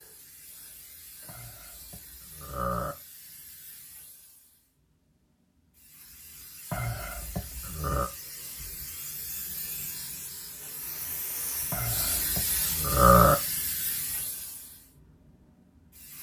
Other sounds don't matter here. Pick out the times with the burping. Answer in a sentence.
The burping can be heard from 1.2 to 3.0 s, from 6.7 to 8.1 s and from 11.7 to 13.3 s.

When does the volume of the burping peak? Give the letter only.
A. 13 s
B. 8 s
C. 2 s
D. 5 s
A.